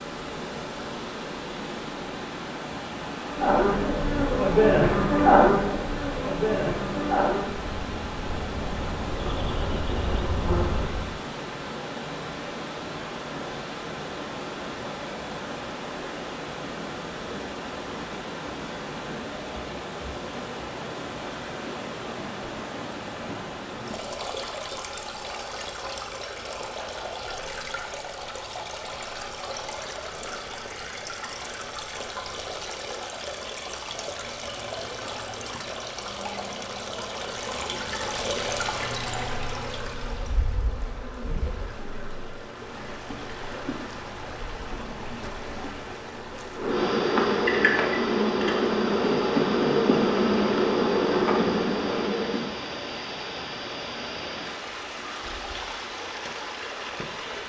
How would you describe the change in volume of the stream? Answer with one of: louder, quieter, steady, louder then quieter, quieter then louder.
steady.